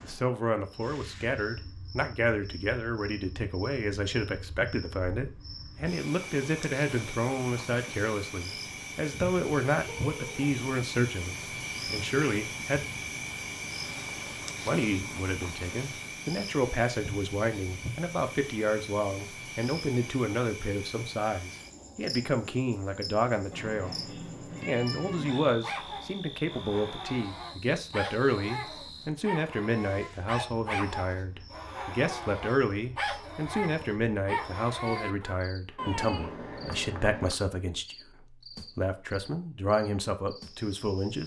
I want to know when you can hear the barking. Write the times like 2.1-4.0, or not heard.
25.2-35.4.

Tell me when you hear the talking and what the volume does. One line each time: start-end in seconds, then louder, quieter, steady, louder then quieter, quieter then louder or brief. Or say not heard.
0.0-12.8 steady
14.7-41.2 steady.